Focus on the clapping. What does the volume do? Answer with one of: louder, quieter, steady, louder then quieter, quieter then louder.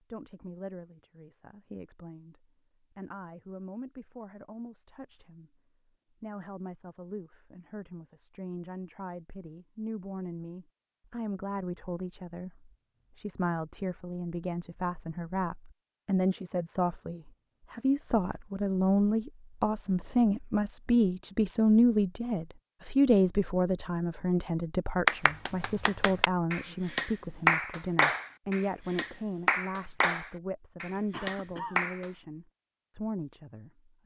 louder then quieter.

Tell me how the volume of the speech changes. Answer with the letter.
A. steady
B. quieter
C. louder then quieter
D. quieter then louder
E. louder
C.